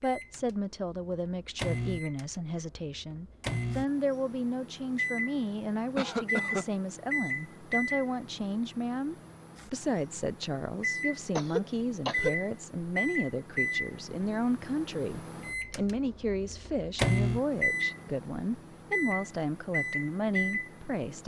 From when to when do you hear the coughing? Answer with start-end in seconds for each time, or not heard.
6.0-6.7, 11.3-12.3.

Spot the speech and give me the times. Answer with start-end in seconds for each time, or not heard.
0.0-21.2.